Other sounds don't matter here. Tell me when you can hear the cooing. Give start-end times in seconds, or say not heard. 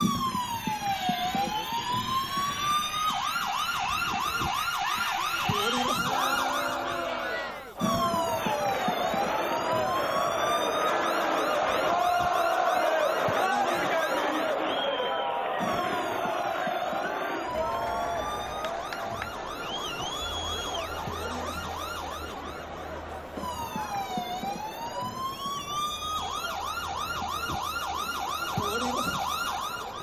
not heard.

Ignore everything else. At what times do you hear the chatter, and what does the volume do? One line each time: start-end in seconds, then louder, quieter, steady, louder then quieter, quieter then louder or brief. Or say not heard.
0.0-29.9 louder then quieter.